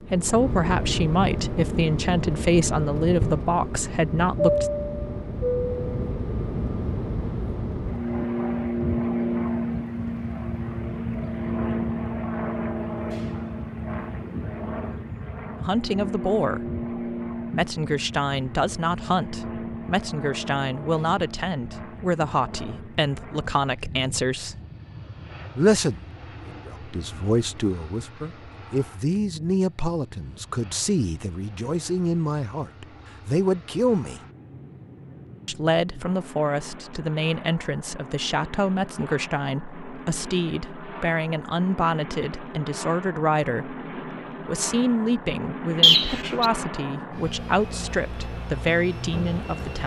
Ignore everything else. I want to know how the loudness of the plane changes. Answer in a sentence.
The loudness of the plane goes down, then up.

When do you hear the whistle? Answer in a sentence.
You can hear the whistle from 45.8 to 46.5 s.